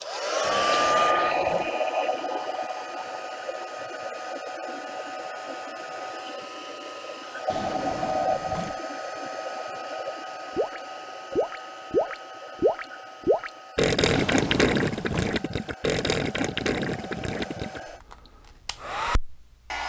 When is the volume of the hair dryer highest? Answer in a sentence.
The volume of the hair dryer peaks at 1 second.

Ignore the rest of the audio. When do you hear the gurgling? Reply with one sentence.
You can hear the gurgling from 10.5 to 17.8 s.